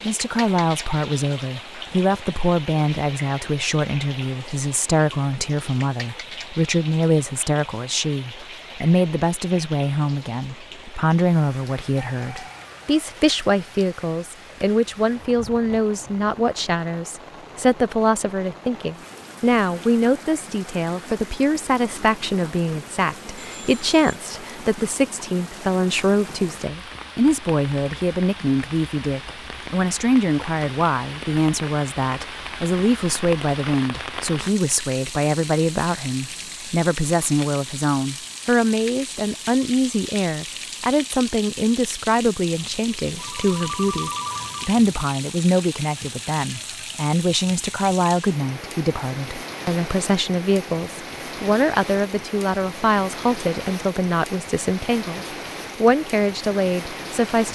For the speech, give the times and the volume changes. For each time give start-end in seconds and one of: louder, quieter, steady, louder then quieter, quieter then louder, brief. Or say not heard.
0.0-57.5 steady.